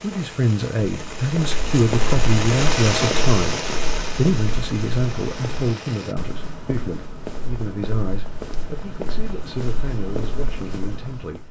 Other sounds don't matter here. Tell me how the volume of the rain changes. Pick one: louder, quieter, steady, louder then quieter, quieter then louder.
louder then quieter.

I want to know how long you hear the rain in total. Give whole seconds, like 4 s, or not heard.
6 s.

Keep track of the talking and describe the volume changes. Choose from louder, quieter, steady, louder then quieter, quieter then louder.
quieter.